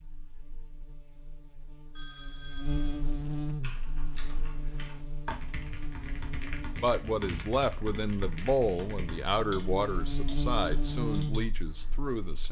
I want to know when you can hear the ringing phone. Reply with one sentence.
The ringing phone can be heard from 1.9 to 3.0 s.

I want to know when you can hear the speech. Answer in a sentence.
You can hear the speech from 6.8 to 12.4 s.